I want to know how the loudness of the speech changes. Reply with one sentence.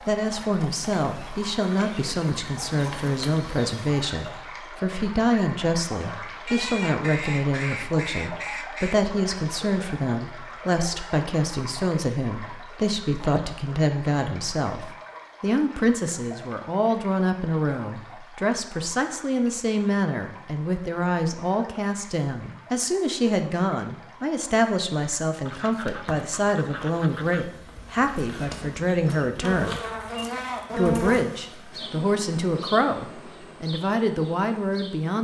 The volume of the speech stays about the same.